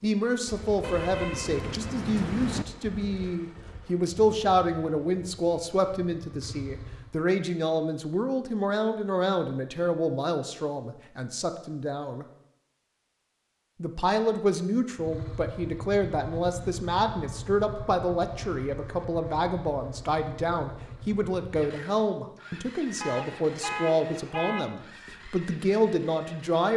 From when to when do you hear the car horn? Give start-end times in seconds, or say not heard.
0.8-2.6, 23.0-24.8.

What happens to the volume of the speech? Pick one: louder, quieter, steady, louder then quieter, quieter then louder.
steady.